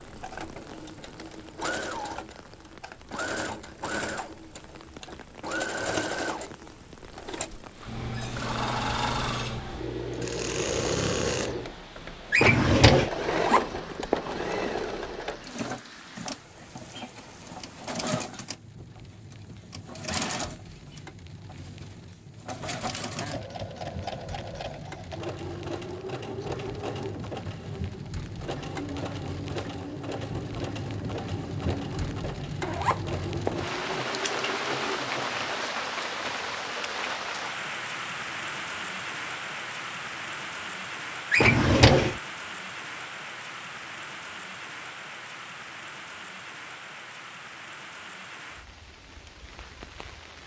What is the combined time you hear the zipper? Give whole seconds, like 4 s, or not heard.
3 s.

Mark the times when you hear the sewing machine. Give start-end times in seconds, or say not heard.
0.0-35.5.